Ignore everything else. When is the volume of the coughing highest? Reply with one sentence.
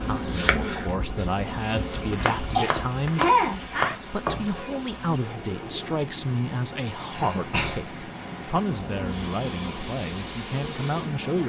The loudest moment of the coughing is at 3 seconds.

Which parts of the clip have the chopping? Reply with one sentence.
You can hear the chopping from 0.1 to 4.5 s.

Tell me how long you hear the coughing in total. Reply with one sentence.
The coughing can be heard for 3 seconds in total.